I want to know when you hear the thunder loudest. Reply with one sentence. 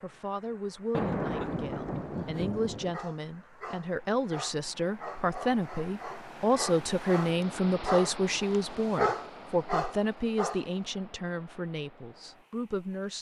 The loudest moment of the thunder is at 1 second.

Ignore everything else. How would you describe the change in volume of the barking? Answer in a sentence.
The loudness of the barking goes up.